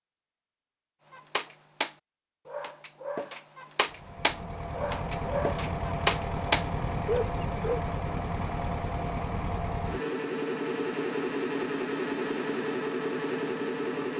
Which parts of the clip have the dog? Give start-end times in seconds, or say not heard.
1.1-7.8.